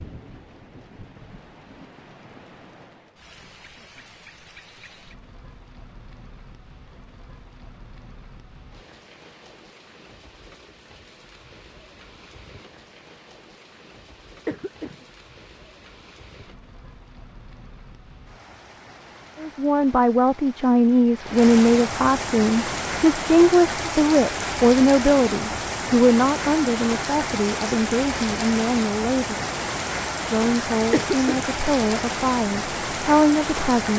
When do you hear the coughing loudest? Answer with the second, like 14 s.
31 s.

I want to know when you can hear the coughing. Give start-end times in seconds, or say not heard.
14.4-15.1, 30.9-31.5.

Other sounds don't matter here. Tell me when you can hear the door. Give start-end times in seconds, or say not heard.
not heard.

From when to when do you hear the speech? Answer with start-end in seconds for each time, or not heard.
19.4-29.4, 30.2-33.9.